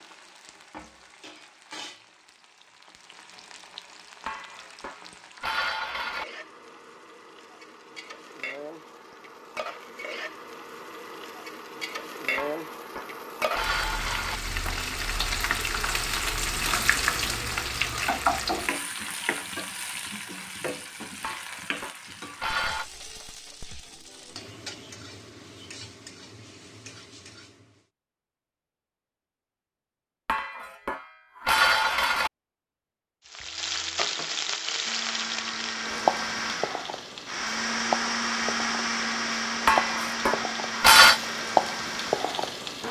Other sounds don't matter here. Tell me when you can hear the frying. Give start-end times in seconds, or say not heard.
0.0-27.9, 33.2-42.8.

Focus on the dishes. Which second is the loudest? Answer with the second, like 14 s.
41 s.